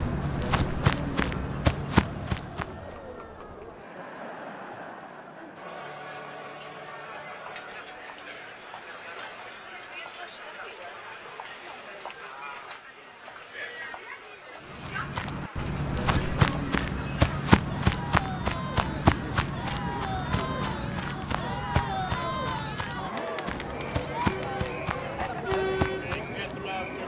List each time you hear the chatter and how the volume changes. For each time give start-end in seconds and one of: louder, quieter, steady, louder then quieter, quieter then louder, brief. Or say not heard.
0.0-27.0 louder.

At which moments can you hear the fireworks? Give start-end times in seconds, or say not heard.
not heard.